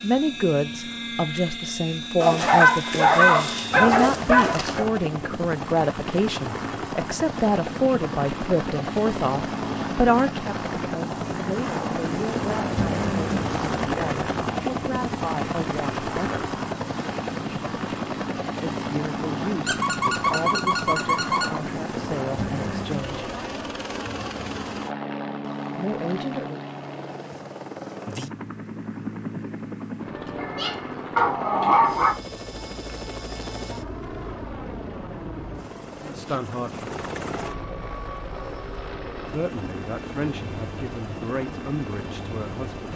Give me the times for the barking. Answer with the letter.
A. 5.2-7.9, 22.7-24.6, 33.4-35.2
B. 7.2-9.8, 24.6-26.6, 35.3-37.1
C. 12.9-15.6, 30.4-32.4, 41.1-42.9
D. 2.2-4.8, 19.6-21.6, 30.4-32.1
D.